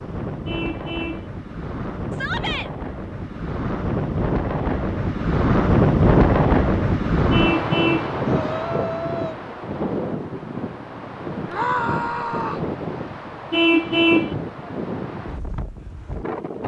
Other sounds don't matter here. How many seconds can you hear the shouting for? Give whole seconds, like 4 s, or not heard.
3 s.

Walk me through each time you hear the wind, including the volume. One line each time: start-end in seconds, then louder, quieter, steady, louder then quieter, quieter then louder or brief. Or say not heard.
0.0-16.6 louder then quieter.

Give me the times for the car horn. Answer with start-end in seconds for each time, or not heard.
0.5-1.2, 7.3-8.1, 13.5-14.3.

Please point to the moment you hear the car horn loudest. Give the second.
14 s.